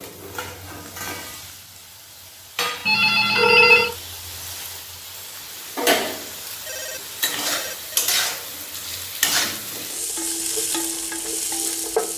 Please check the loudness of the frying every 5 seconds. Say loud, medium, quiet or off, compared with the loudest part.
medium, loud, loud.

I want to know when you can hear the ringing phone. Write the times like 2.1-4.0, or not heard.
2.9-4.0, 6.7-8.0.